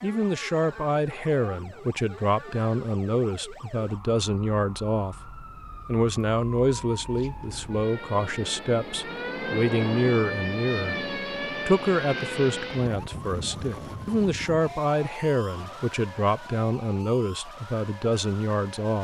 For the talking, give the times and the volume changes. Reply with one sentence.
The talking can be heard from 0.0 to 18.9 s, at a steady volume.